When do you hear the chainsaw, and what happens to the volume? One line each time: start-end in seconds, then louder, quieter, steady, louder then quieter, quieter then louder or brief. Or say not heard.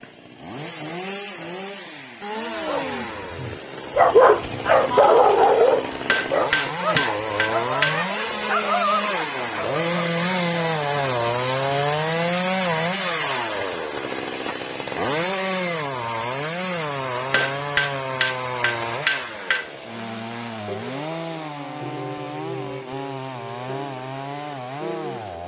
0.0-25.4 louder then quieter.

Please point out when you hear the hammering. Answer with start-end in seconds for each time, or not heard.
5.9-8.1, 17.1-19.8.